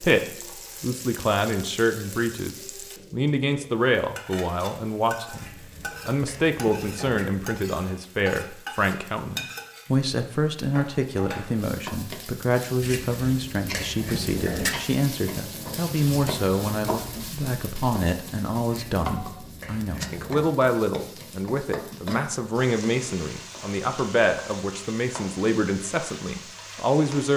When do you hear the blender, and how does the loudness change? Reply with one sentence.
You can't hear the blender here.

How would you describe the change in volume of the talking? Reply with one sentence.
The volume of the talking stays about the same.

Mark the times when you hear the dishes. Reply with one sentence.
You can hear the dishes from 5.3 to 7.3 s, from 12.8 to 14.8 s and from 18.6 to 20.4 s.